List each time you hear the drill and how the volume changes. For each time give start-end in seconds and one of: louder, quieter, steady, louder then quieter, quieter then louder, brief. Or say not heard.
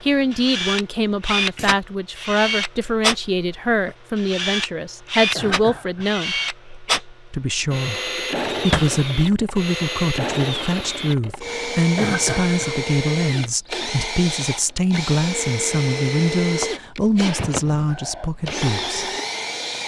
0.0-19.8 steady.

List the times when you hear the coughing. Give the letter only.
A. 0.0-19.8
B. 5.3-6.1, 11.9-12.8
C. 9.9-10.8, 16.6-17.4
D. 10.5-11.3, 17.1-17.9
B.